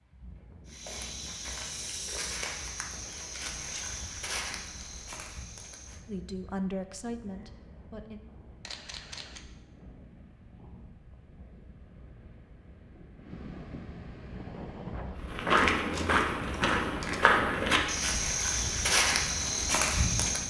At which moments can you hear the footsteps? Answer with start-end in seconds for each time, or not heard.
0.7-6.0, 15.2-20.4.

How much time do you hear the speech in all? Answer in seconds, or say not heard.
2 s.